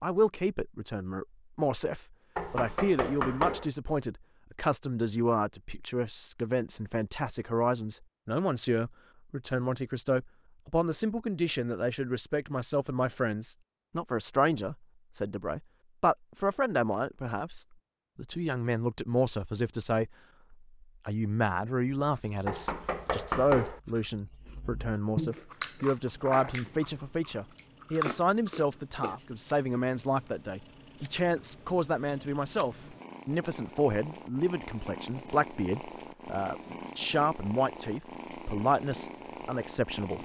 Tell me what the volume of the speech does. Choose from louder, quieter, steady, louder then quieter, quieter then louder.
steady.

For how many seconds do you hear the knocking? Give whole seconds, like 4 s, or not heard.
3 s.